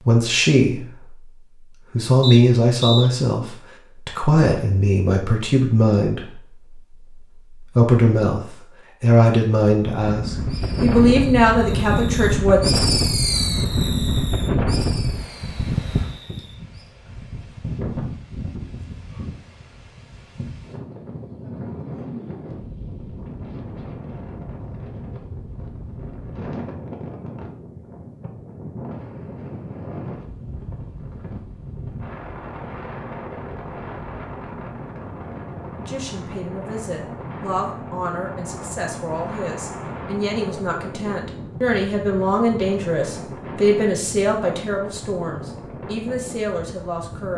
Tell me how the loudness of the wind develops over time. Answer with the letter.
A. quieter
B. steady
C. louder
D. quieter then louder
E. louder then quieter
A.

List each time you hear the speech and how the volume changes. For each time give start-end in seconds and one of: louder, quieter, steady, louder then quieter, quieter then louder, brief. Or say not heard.
0.0-1.2 brief
1.9-12.6 steady
35.8-47.3 louder then quieter.